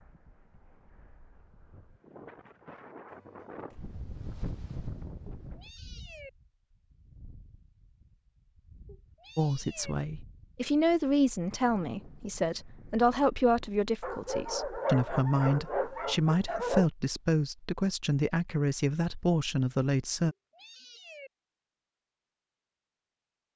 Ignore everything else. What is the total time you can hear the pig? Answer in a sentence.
You can't hear the pig here.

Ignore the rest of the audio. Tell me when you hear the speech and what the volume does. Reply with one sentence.
You can hear the speech from 9.3 to 20.4 s, at a steady volume.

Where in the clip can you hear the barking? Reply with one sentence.
The barking can be heard from 14.0 to 16.9 s.